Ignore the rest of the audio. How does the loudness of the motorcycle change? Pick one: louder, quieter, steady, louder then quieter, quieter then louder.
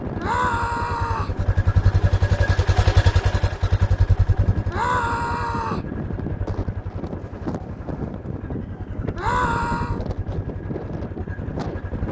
quieter.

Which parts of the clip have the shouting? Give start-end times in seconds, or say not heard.
0.1-1.4, 4.7-5.8, 9.2-10.0.